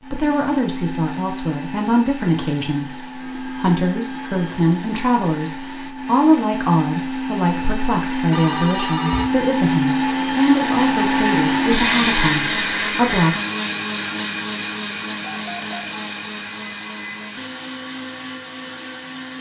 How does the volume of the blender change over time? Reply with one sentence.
The volume of the blender goes up, then down.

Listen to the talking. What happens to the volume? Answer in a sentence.
The loudness of the talking stays about the same.